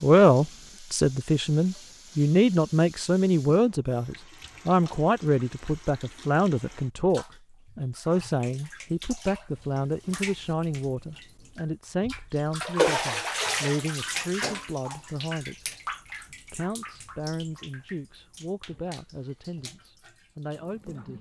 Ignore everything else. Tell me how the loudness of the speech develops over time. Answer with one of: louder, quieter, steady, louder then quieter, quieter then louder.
quieter.